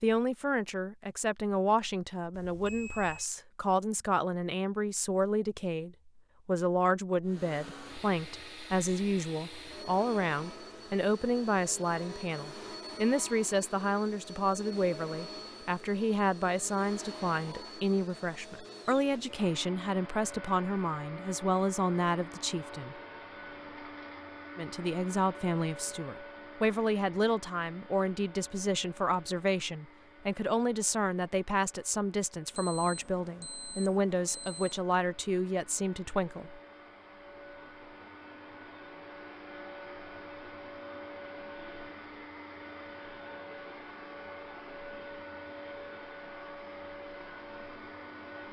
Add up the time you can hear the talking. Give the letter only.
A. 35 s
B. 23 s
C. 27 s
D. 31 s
A.